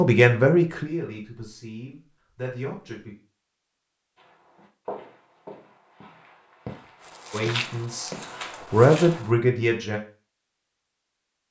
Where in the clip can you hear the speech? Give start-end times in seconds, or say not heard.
0.0-3.1, 7.3-10.0.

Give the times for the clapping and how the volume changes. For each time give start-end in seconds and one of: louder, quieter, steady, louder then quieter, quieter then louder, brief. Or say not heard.
not heard.